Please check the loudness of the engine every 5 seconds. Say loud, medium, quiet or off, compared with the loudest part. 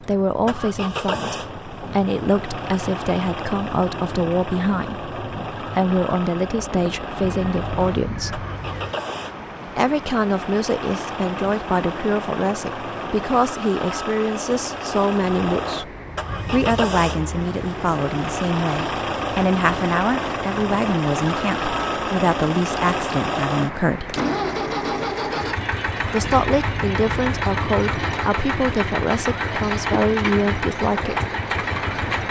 medium, medium, medium, loud, loud, loud, loud.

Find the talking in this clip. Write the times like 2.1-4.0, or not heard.
0.0-8.4, 9.7-15.9, 16.5-24.2, 26.1-31.2.